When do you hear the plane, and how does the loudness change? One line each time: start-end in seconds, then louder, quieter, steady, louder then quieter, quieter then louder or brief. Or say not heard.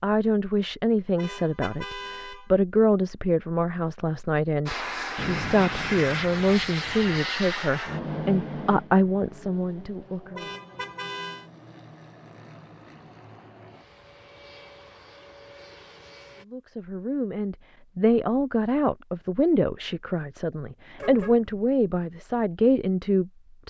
4.7-16.4 quieter.